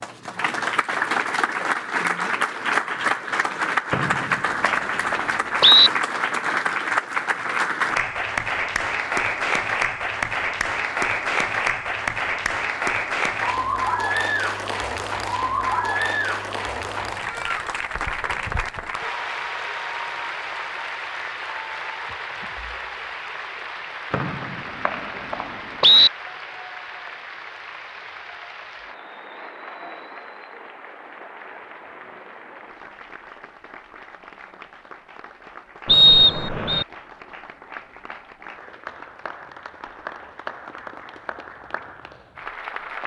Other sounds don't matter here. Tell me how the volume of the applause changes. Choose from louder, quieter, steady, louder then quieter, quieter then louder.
quieter.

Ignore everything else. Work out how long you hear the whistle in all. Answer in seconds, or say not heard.
5 s.